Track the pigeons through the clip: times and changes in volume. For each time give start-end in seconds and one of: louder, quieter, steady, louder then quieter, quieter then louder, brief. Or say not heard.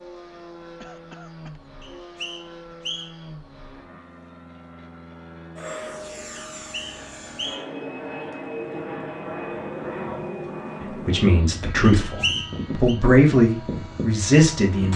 not heard.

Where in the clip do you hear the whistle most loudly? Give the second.
12 s.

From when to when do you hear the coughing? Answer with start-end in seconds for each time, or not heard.
0.8-1.6.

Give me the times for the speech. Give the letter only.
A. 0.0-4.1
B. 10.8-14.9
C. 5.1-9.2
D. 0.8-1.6
B.